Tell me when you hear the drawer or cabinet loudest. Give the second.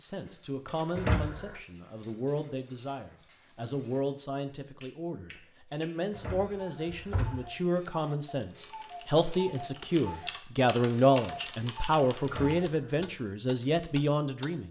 1 s.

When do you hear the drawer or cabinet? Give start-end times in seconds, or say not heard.
0.9-1.6, 6.1-7.5, 12.2-13.1.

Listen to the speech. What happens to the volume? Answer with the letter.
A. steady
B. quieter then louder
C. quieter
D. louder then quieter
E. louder
E.